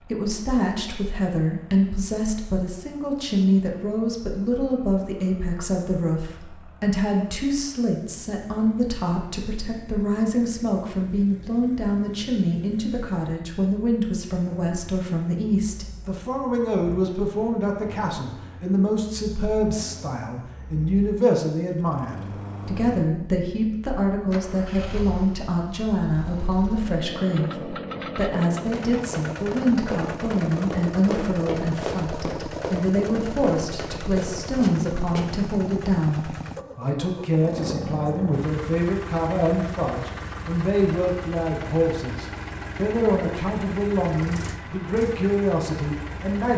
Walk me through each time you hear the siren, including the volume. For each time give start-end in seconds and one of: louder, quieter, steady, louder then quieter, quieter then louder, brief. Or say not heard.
not heard.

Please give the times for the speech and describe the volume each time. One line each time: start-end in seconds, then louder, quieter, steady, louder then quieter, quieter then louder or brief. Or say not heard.
0.1-46.5 steady.